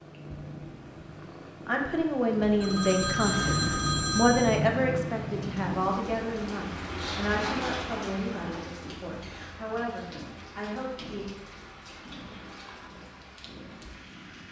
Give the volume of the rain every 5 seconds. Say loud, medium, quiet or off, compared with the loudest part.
off, loud, medium.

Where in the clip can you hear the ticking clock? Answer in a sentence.
You can't hear the ticking clock here.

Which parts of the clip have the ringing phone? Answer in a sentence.
The ringing phone can be heard from 2.4 to 4.7 s.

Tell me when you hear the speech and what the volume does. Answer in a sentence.
You can hear the speech from 1.6 to 11.2 s, getting quieter.